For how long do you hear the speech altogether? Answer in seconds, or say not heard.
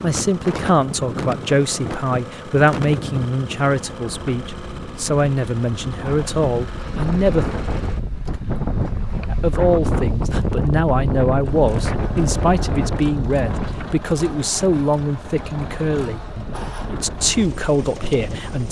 17 s.